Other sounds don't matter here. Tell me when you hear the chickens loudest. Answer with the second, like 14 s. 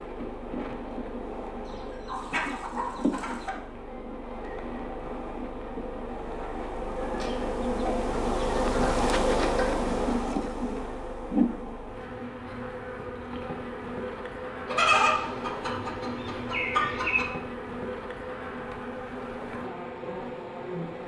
15 s.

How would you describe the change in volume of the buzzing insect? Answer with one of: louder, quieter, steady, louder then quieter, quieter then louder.
louder then quieter.